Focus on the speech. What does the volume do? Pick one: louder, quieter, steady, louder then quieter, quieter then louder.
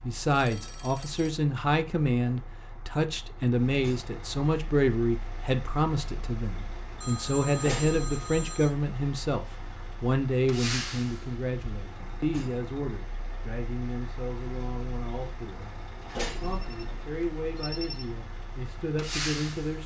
quieter.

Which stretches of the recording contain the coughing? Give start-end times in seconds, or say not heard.
not heard.